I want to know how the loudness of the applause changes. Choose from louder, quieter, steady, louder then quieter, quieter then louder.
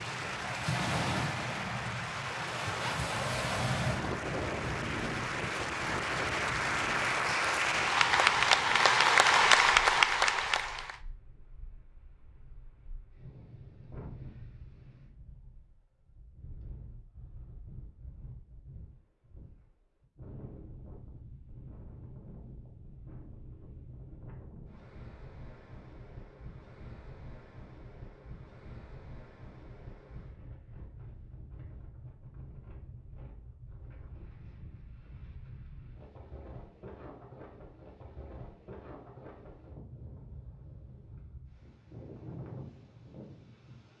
louder.